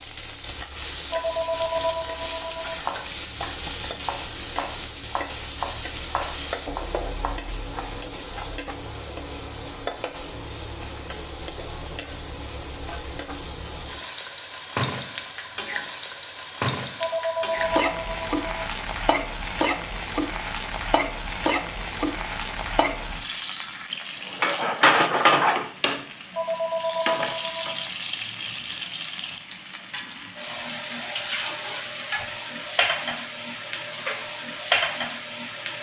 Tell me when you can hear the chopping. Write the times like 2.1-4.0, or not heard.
2.5-8.4.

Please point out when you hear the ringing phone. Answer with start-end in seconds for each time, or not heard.
1.1-2.8, 16.9-18.7, 26.4-27.9.